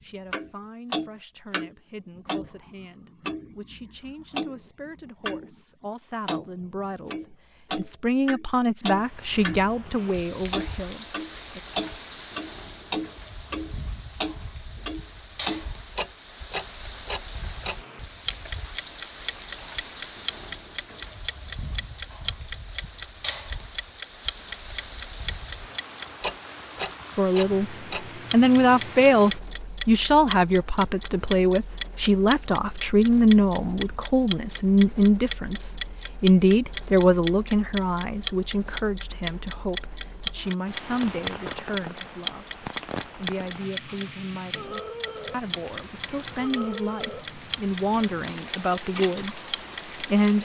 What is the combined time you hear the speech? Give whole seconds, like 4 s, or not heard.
35 s.